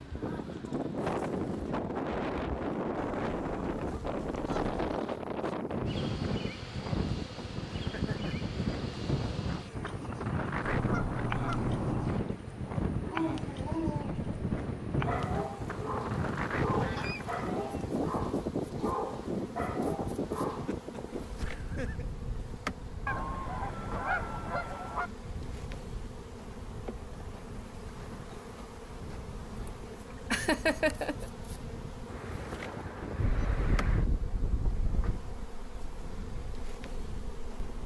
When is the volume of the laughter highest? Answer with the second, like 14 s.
31 s.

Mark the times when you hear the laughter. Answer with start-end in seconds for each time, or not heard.
7.9-8.3, 20.6-22.1, 30.3-31.2.